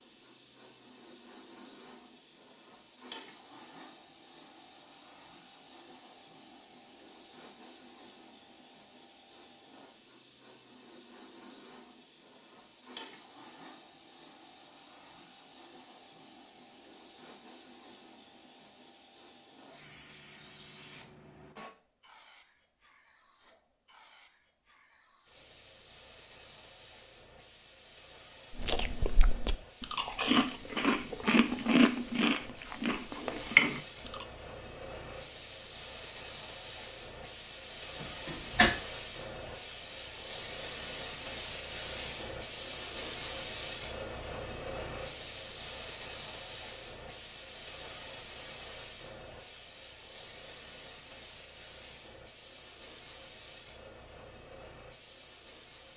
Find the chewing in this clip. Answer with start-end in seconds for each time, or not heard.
28.5-34.2.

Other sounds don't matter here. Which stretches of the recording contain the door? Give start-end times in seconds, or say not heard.
38.0-38.7.